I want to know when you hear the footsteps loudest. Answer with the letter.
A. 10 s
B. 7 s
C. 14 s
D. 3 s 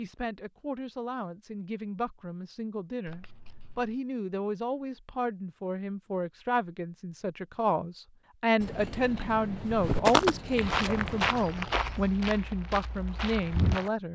A.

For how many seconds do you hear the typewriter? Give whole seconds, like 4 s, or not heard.
not heard.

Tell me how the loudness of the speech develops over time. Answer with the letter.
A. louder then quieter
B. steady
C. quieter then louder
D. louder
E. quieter
D.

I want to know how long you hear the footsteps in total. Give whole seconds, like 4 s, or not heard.
4 s.